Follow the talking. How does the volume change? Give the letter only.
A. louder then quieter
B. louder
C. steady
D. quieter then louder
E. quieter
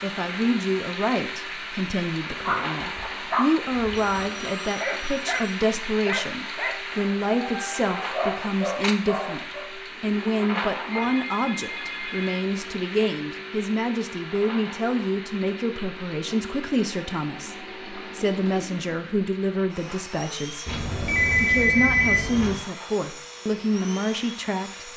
C.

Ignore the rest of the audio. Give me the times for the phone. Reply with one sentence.
You can hear the phone from 4.0 to 5.5 s, from 10.9 to 12.4 s and from 20.6 to 22.6 s.